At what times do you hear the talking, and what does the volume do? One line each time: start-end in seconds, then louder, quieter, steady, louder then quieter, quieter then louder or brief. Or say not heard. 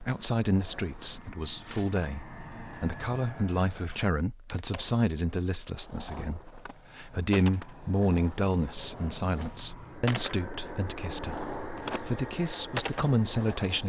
0.0-13.8 steady.